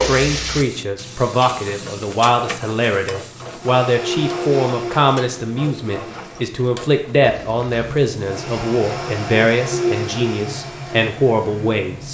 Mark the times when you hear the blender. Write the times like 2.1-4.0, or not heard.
3.5-6.4, 8.2-12.1.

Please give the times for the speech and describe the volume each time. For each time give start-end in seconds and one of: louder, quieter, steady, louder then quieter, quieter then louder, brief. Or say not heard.
0.0-12.1 steady.